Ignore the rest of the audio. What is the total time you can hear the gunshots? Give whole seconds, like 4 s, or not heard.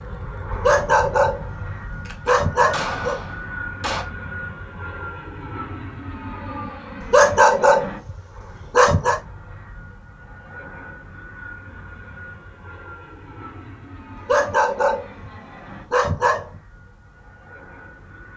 2 s.